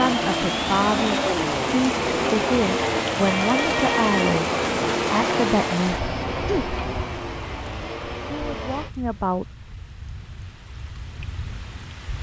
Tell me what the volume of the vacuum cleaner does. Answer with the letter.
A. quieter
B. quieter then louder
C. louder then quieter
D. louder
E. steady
A.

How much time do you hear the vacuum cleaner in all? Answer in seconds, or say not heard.
9 s.